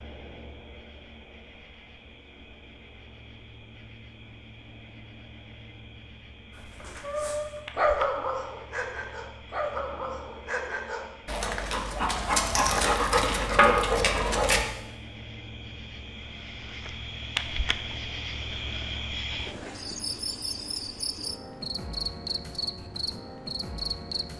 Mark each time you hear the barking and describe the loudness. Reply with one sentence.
You can hear the barking from 6.8 to 14.7 s, getting quieter then louder.